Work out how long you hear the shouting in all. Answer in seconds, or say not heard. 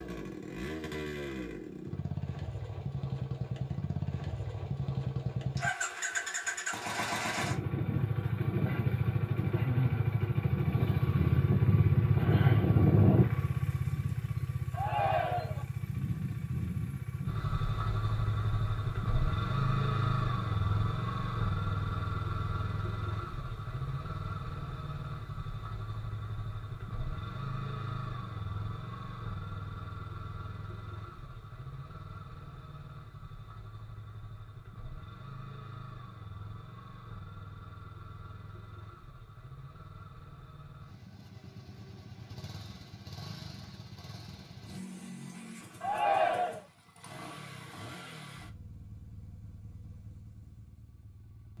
2 s.